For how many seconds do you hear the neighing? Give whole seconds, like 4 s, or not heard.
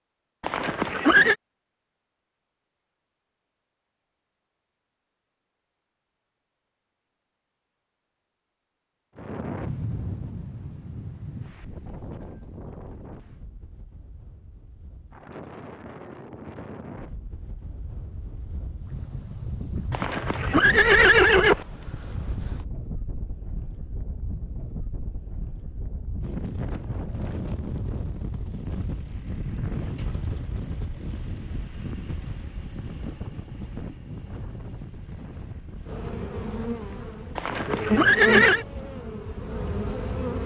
4 s.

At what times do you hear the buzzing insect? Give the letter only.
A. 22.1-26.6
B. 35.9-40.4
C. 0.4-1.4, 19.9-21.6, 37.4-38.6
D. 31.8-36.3
B.